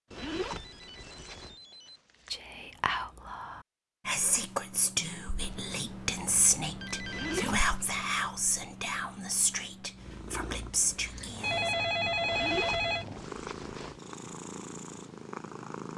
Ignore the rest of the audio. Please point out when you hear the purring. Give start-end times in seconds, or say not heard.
9.9-15.9.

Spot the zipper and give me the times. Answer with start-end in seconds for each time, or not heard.
0.1-1.6, 7.0-8.2, 12.2-14.0.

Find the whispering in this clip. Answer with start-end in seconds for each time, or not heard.
2.3-11.8.